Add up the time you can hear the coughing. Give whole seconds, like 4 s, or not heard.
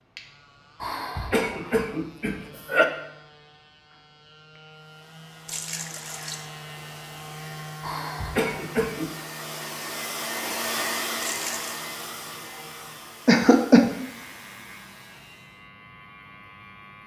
4 s.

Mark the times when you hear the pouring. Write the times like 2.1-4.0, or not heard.
5.5-6.5, 11.2-11.7.